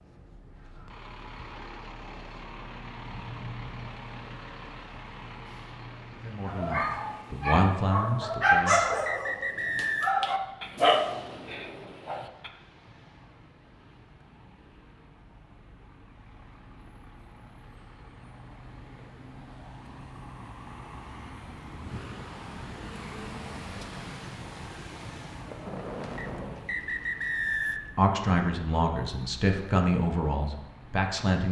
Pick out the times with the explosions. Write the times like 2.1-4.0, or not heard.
10.8-12.3, 25.4-26.8.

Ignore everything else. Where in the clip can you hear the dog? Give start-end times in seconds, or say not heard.
6.5-12.5.